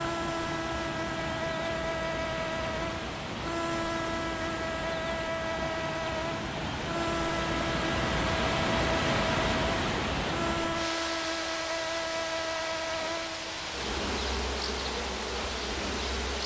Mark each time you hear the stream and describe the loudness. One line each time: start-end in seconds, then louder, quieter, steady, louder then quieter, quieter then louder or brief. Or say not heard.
0.0-16.4 louder then quieter.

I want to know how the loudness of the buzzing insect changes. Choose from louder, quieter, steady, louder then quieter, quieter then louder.
steady.